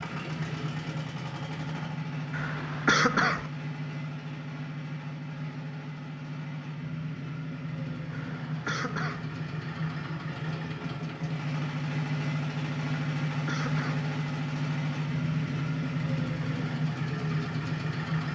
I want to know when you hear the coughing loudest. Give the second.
3 s.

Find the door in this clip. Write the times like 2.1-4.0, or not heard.
not heard.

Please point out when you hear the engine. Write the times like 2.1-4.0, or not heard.
0.0-18.3.